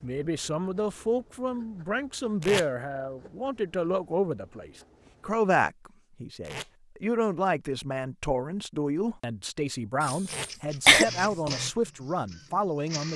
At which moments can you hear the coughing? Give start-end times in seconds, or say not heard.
10.0-11.6.